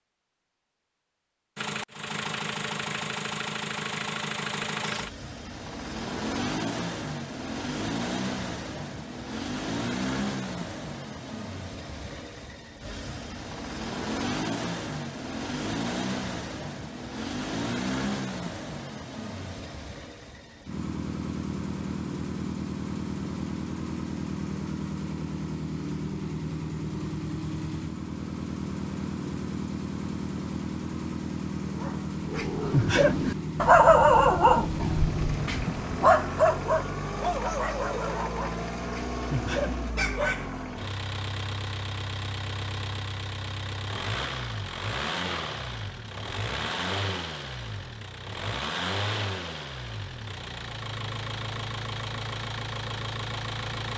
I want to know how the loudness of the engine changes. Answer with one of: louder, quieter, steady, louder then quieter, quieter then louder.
steady.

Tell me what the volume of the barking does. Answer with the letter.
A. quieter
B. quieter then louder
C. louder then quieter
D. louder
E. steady
A.